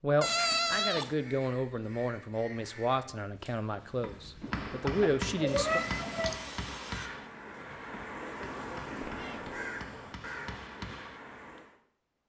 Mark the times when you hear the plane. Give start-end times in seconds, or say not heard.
not heard.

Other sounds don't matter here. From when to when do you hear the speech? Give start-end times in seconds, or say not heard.
0.0-5.8.